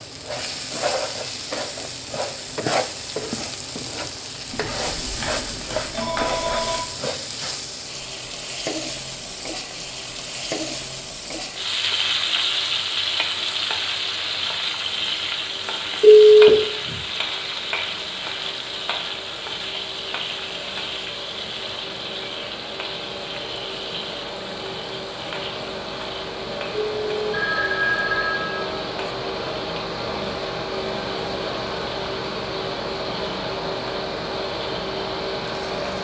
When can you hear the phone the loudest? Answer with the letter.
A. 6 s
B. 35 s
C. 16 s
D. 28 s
C.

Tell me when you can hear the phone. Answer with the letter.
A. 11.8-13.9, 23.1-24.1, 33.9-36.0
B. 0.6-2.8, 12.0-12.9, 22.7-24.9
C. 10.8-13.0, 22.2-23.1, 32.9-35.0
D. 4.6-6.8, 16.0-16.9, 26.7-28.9
D.